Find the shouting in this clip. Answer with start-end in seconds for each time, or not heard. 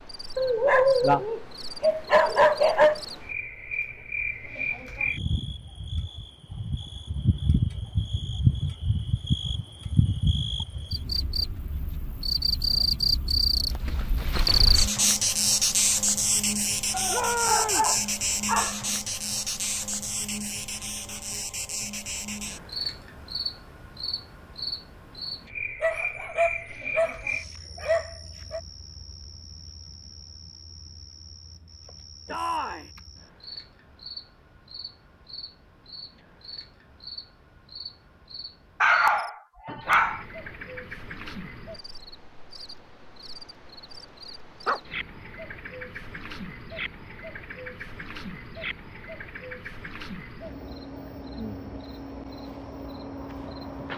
17.1-17.9, 32.2-32.9.